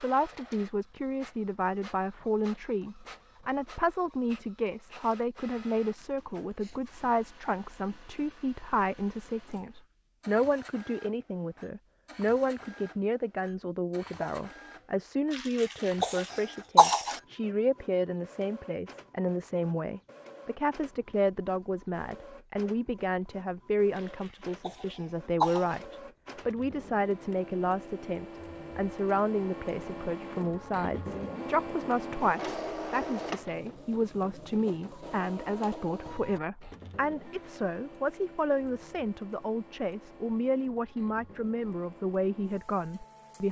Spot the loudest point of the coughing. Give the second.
17 s.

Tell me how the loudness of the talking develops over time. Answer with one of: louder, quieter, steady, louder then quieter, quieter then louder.
steady.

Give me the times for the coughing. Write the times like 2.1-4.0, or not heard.
15.3-17.2, 23.9-25.8.